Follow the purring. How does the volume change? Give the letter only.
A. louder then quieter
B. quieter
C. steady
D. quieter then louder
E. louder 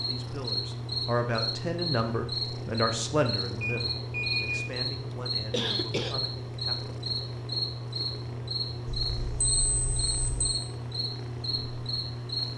C.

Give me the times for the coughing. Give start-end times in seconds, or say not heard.
5.1-6.2.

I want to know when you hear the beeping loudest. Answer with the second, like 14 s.
4 s.